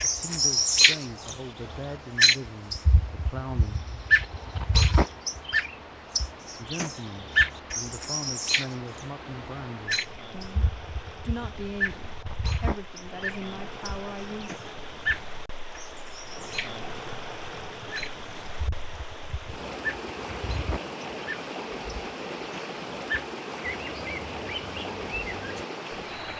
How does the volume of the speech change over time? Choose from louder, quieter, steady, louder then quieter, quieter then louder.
steady.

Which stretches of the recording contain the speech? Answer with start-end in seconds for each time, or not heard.
0.0-3.9, 6.5-14.5.